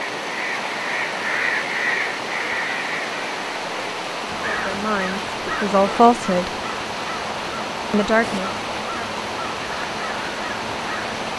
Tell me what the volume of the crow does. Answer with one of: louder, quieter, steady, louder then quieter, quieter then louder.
quieter.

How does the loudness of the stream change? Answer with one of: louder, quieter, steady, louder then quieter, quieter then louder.
steady.